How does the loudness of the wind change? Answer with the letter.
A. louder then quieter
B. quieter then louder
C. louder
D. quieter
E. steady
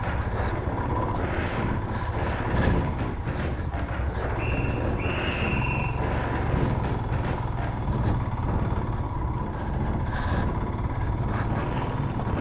E.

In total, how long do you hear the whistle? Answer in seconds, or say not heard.
2 s.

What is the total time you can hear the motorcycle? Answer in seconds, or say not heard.
12 s.